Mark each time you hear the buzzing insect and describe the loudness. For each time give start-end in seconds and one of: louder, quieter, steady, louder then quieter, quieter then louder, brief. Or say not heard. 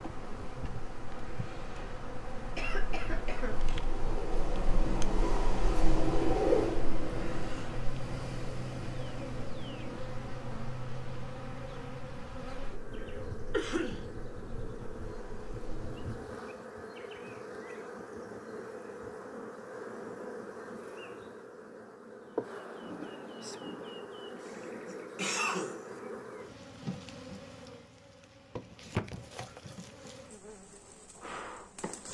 0.0-32.0 steady.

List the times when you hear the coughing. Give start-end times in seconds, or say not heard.
2.5-3.5, 13.5-14.1, 24.4-25.9.